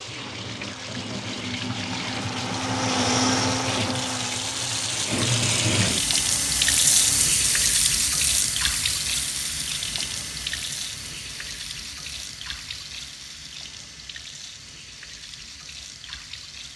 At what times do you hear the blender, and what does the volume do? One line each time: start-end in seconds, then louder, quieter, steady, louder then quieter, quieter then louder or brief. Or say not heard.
0.0-7.3 louder then quieter.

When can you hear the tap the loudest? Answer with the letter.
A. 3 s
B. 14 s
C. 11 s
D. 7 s
D.